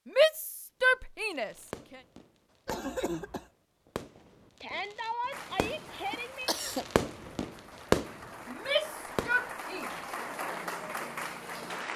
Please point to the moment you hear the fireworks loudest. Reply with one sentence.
The volume of the fireworks peaks at 8 seconds.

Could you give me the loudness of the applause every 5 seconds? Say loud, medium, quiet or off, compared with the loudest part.
off, medium, loud.